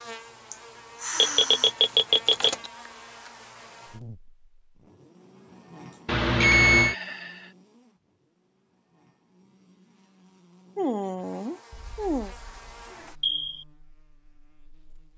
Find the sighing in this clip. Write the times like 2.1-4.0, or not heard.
0.5-1.8, 6.4-7.5, 10.8-12.3.